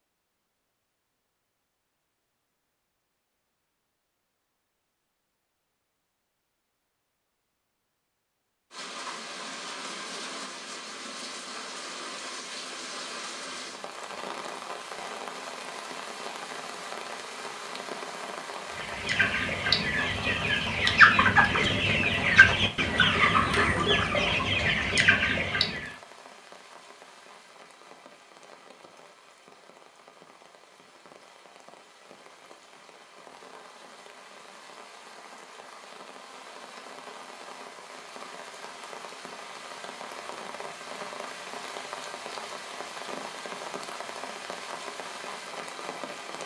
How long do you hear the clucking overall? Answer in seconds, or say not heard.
7 s.